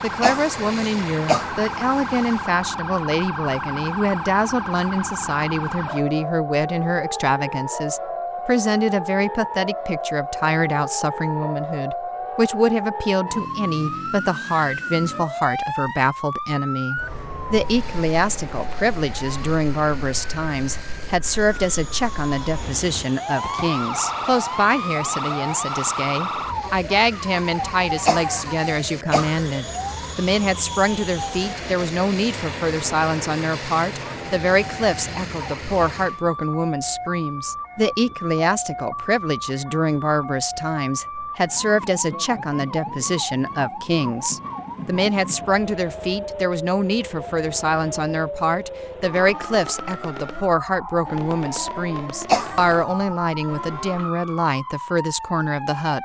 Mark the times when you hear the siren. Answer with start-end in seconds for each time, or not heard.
0.0-56.0.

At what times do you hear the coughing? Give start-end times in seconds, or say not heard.
0.2-1.6, 28.1-29.4, 52.2-52.8.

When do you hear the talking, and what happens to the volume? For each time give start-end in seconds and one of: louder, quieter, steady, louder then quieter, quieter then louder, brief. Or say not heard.
0.0-56.0 steady.